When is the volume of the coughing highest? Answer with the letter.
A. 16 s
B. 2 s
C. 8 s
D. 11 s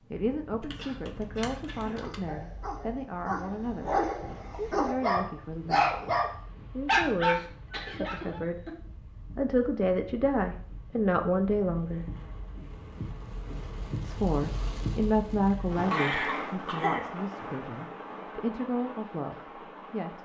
A.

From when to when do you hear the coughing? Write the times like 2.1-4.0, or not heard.
0.8-2.0, 7.2-8.8, 15.9-17.4.